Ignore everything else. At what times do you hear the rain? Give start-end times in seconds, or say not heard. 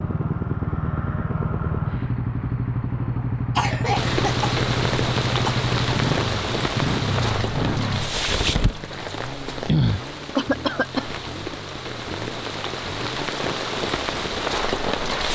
4.0-15.3.